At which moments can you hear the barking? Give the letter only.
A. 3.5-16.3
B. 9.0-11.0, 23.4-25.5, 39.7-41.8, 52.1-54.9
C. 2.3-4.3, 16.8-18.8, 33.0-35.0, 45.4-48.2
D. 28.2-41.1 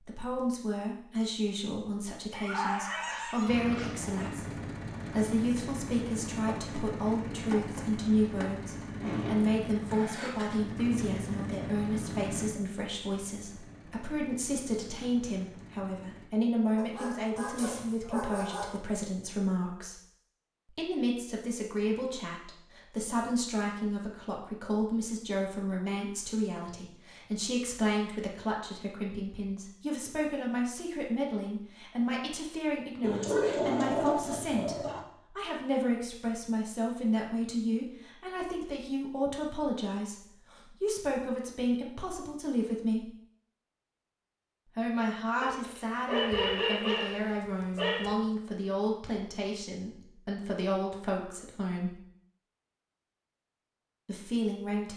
C.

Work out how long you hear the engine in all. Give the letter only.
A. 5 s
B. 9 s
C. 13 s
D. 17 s
C.